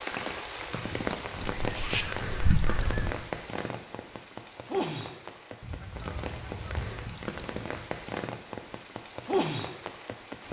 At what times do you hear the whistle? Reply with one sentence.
The whistle can't be heard in this clip.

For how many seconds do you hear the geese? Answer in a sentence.
You can hear the geese for 3 seconds altogether.